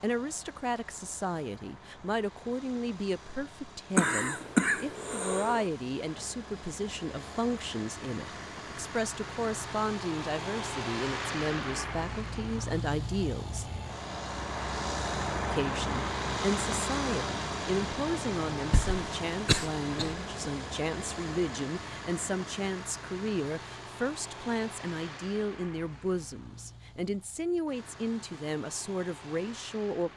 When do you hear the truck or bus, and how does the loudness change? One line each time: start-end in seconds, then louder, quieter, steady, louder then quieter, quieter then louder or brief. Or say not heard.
0.0-30.1 louder then quieter.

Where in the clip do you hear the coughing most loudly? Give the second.
5 s.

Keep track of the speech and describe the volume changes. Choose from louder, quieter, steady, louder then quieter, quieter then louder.
steady.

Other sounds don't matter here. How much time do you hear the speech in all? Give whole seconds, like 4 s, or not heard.
28 s.